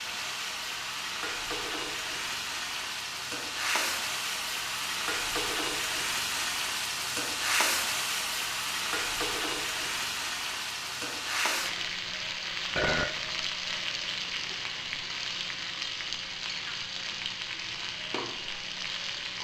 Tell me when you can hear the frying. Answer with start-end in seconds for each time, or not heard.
0.0-19.3.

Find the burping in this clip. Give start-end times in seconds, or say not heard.
12.8-13.2.